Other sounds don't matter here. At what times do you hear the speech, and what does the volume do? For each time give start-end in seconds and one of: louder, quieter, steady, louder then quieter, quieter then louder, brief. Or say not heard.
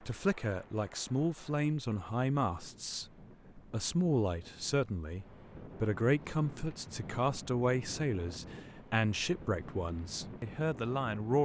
0.0-11.4 steady.